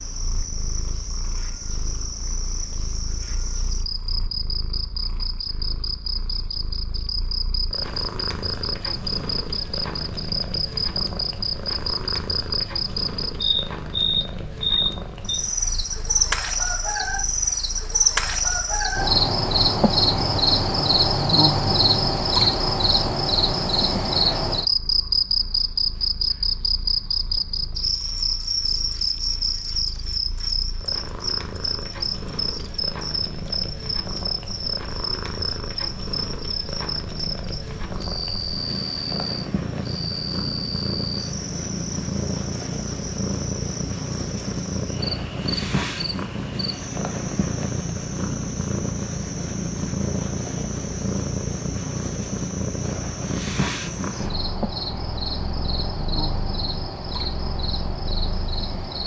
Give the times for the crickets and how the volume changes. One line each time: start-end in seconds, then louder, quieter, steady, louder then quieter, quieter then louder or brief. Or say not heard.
0.0-59.0 louder then quieter.